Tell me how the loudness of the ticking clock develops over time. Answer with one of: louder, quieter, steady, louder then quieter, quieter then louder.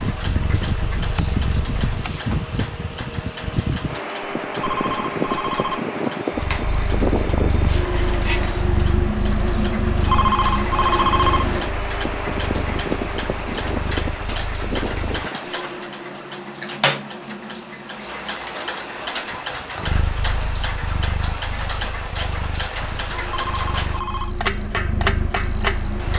louder.